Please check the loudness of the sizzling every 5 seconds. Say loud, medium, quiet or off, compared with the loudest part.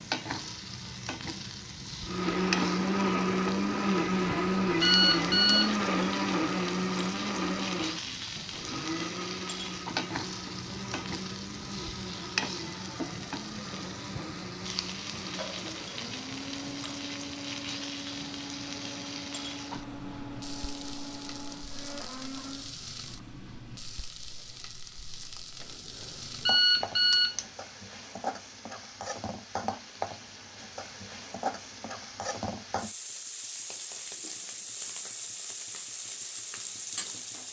loud, loud, loud, loud, medium, loud, loud, loud.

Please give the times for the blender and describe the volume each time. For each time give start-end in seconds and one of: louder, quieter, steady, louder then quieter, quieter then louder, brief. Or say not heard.
2.0-22.8 quieter.